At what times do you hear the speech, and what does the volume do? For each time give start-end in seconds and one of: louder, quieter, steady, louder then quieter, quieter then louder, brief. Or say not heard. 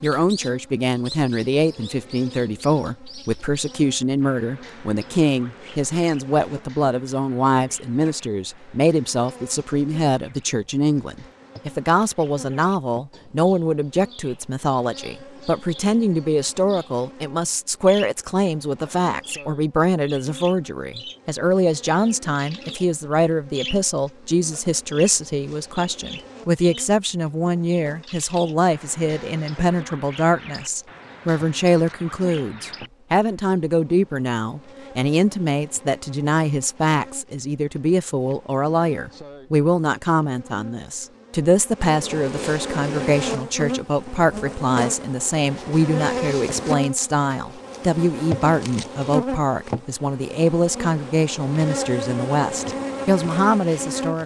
0.0-54.2 steady.